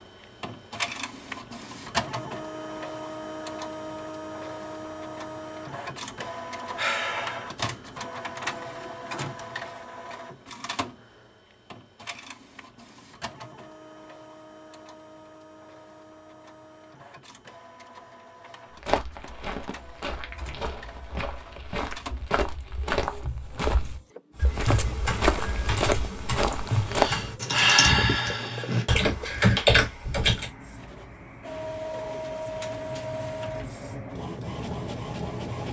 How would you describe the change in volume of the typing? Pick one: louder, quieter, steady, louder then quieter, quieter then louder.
louder.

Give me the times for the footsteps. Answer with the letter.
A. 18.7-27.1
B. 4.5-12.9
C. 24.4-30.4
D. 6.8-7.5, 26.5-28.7
A.